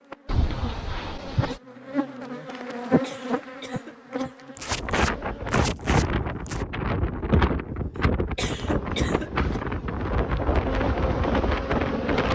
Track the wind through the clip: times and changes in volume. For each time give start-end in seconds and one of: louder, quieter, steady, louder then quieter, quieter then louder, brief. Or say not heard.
4.6-12.3 steady.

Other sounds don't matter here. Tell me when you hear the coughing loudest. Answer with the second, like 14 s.
9 s.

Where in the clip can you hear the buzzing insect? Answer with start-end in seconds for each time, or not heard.
0.0-5.7, 8.6-12.3.